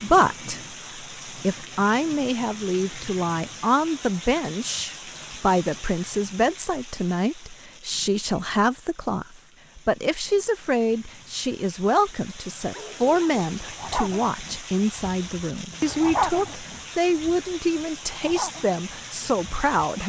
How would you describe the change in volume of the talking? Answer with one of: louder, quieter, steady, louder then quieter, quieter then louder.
steady.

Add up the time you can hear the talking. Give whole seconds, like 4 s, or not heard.
20 s.